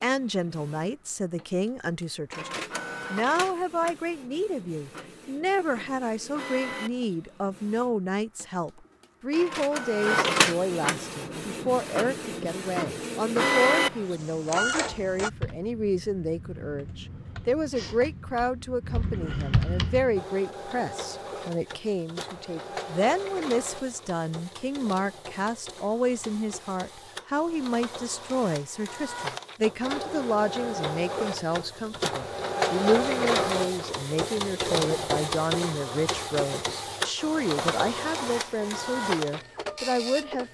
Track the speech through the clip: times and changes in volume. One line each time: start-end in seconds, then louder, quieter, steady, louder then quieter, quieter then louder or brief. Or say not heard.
0.0-40.4 steady.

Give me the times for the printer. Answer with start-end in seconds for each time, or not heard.
0.0-15.3, 20.1-40.4.